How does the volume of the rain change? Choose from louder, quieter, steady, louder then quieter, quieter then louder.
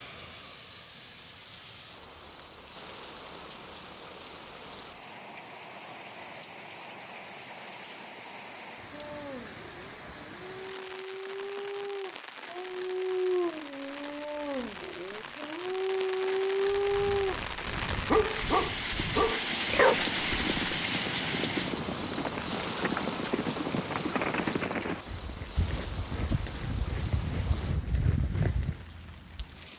louder then quieter.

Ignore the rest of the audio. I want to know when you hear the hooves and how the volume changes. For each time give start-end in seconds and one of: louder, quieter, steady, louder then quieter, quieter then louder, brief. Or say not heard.
16.6-28.9 louder.